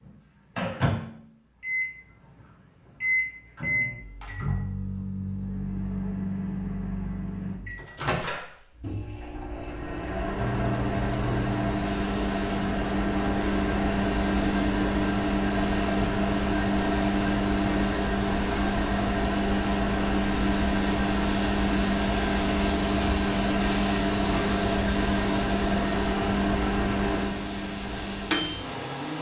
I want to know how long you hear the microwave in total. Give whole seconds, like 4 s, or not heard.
29 s.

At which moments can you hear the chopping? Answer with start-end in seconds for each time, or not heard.
not heard.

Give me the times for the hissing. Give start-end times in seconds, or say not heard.
10.3-29.1.